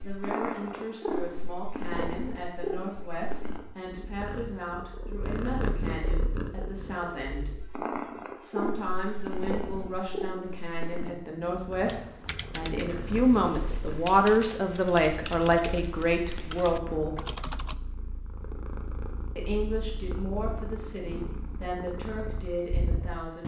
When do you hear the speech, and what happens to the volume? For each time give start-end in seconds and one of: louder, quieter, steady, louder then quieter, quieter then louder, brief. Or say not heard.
0.0-17.2 louder
19.4-23.4 steady.